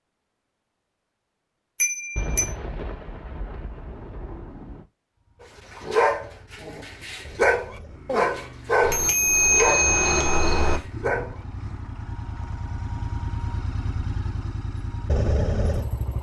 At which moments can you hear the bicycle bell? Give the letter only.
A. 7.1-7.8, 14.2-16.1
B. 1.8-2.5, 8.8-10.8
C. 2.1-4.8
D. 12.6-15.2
B.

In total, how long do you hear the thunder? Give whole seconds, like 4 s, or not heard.
3 s.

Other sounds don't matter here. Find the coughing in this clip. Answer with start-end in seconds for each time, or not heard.
not heard.